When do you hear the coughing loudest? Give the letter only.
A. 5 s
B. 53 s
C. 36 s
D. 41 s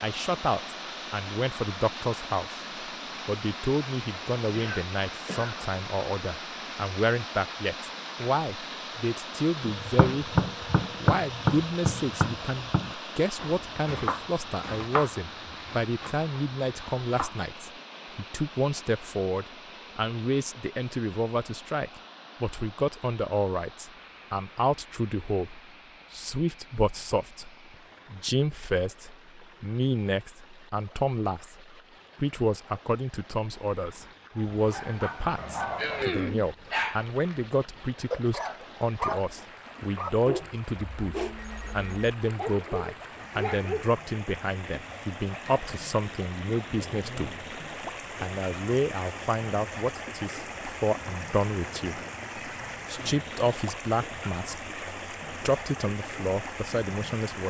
C.